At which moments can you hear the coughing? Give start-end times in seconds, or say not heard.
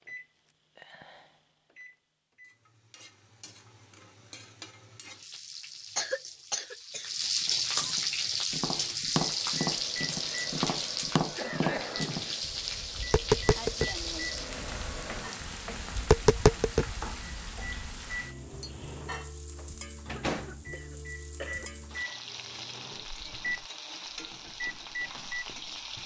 6.0-7.1, 11.3-12.4, 20.1-21.6.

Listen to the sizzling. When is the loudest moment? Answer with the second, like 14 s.
8 s.